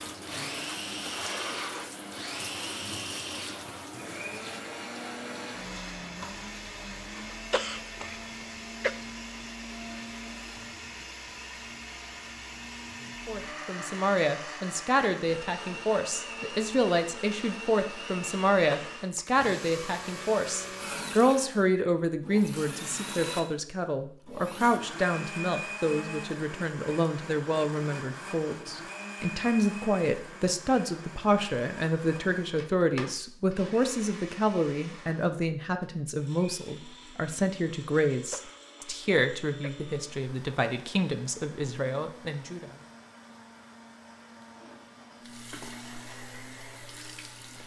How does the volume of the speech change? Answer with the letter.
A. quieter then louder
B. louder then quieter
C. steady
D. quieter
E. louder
C.